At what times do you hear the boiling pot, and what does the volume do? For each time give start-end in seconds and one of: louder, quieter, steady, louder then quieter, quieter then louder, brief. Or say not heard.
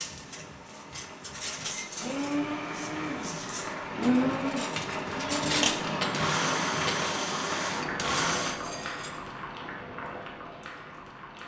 0.0-11.4 louder then quieter.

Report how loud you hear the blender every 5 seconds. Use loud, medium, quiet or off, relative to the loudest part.
loud, loud, off.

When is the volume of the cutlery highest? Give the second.
6 s.